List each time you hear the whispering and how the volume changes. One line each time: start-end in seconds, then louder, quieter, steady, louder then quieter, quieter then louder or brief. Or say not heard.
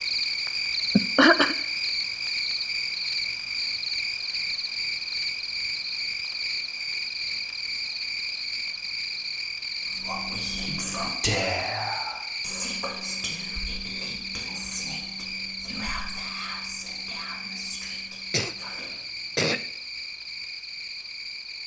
9.9-18.9 quieter.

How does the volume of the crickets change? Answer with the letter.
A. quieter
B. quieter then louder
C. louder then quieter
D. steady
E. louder
A.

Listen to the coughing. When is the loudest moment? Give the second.
1 s.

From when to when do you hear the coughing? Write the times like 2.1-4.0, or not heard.
0.9-1.6, 18.3-19.6.